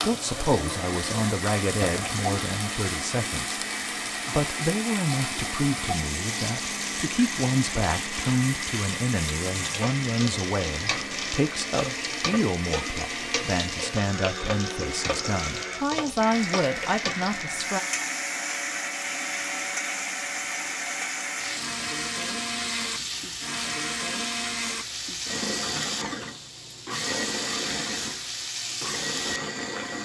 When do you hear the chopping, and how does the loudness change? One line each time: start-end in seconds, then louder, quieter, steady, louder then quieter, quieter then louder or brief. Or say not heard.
not heard.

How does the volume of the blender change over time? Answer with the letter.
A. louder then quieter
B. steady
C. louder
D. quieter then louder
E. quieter
B.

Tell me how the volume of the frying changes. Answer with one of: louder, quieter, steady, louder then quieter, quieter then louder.
steady.